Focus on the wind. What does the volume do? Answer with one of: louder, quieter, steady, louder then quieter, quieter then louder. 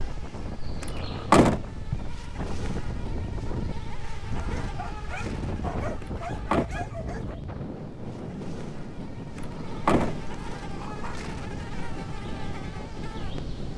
steady.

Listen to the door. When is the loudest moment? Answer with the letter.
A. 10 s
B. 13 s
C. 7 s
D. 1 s
D.